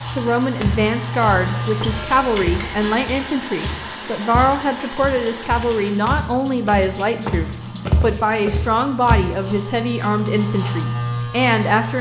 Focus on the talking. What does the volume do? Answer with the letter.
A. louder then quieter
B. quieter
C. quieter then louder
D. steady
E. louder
D.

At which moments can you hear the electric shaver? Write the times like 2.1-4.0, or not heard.
0.0-3.0, 5.5-11.9.